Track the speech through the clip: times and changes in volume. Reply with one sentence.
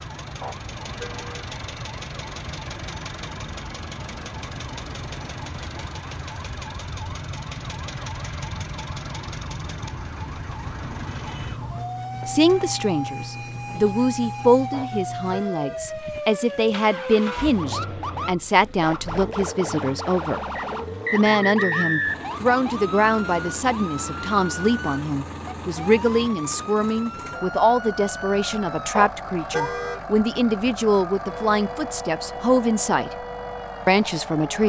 The speech can be heard from 12.2 to 20.4 s, at a steady volume; from 21.1 to 33.1 s, at a steady volume; and briefly from 33.9 to 34.6 s.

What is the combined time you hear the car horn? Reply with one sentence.
You can hear the car horn for 3 seconds altogether.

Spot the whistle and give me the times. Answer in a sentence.
The whistle can be heard from 20.6 to 22.4 s.